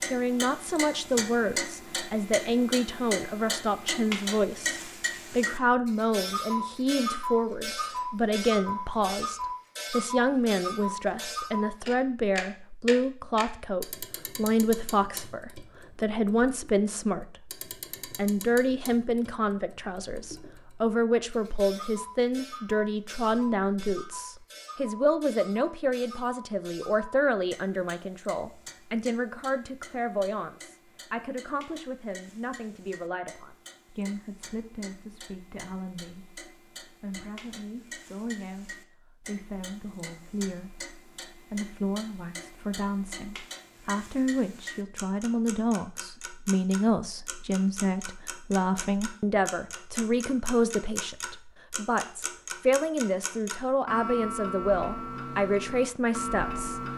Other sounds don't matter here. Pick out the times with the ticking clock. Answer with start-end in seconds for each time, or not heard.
0.0-56.9.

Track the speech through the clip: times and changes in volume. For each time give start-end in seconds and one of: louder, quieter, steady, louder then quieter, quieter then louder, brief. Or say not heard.
0.0-56.9 quieter then louder.